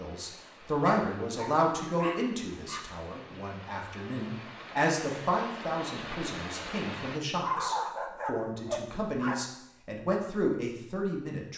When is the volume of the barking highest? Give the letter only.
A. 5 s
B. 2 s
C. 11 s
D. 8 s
D.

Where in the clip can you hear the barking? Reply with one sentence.
The barking can be heard from 0.8 to 2.8 s and from 7.4 to 9.3 s.